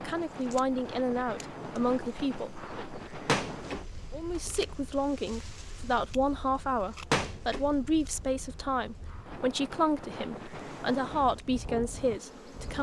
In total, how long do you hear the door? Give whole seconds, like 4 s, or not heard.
2 s.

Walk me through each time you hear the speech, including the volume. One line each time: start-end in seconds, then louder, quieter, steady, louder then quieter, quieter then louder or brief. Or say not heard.
0.0-2.9 brief
4.1-12.7 steady.